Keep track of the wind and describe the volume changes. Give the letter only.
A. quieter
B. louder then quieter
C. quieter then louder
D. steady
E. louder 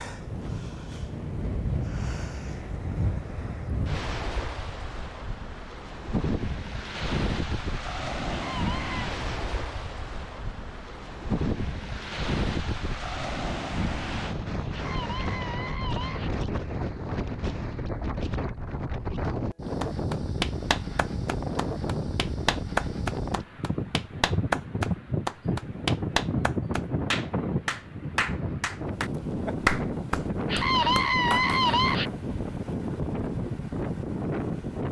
D.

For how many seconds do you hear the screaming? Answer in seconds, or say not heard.
4 s.